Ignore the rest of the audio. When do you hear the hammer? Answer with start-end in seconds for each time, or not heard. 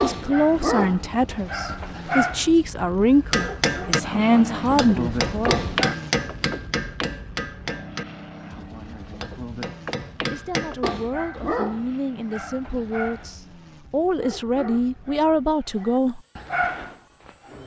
3.3-10.9.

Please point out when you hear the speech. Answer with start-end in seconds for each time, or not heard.
0.0-5.6, 10.3-16.2.